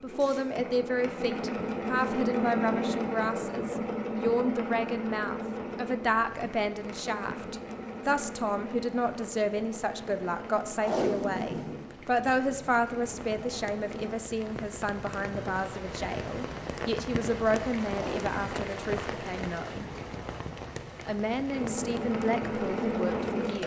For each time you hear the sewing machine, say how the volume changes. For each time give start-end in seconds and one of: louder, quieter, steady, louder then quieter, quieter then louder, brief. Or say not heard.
0.0-14.2 quieter
21.5-23.6 brief.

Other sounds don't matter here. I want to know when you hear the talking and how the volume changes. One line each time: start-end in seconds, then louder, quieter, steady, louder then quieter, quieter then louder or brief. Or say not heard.
0.0-19.9 steady
21.1-23.6 brief.